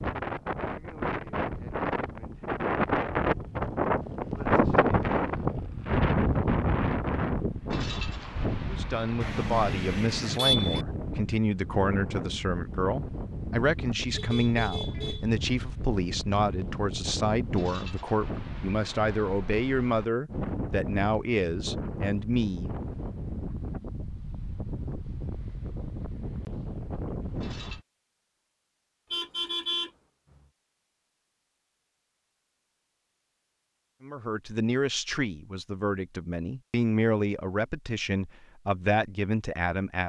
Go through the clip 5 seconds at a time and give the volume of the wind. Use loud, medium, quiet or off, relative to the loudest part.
loud, loud, medium, medium, medium, medium, off, off.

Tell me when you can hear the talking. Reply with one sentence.
You can hear the talking from 8.7 to 22.7 s and from 34.0 to 40.0 s.